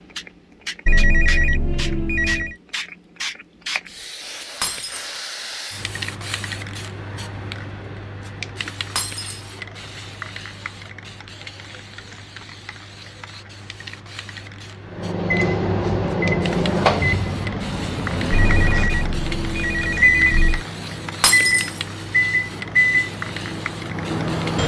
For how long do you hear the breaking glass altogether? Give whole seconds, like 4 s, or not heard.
2 s.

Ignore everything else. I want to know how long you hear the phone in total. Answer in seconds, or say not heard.
4 s.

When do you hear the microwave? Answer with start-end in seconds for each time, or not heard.
14.9-24.6.